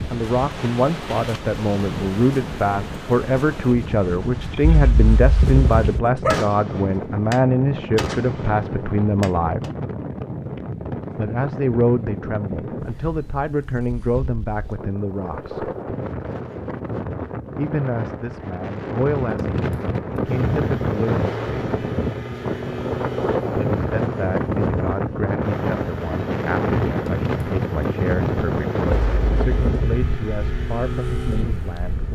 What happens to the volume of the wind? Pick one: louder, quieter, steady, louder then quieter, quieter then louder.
louder.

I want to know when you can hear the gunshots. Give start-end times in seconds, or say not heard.
6.3-9.7.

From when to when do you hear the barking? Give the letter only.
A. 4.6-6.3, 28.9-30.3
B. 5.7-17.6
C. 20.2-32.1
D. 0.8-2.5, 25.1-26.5
A.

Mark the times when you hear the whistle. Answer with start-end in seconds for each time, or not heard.
not heard.